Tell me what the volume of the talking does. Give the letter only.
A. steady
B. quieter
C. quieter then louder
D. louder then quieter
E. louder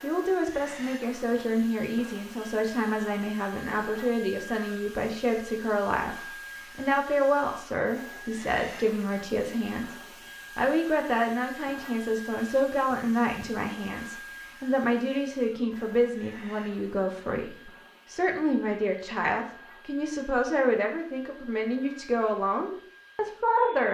A.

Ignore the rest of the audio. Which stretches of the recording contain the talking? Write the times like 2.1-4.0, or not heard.
0.0-9.9, 10.6-23.8.